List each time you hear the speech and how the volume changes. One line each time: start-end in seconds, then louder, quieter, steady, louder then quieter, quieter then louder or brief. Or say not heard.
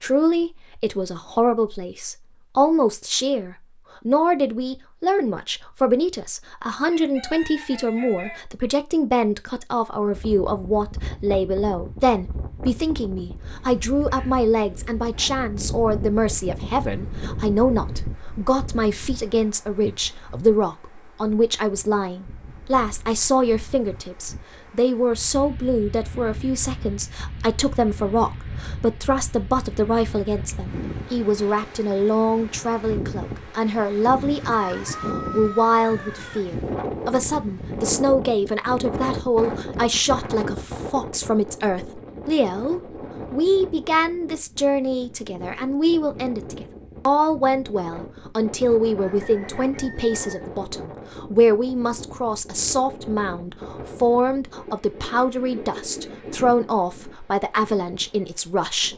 0.0-58.9 steady.